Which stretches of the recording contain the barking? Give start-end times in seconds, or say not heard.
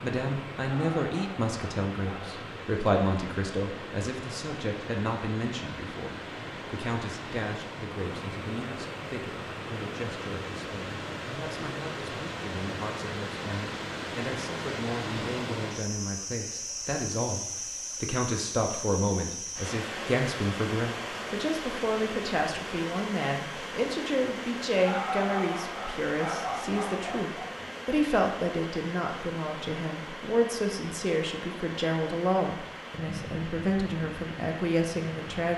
0.6-2.4, 24.8-27.4.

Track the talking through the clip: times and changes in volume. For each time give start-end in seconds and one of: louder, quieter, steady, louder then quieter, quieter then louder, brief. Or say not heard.
0.0-35.5 quieter then louder.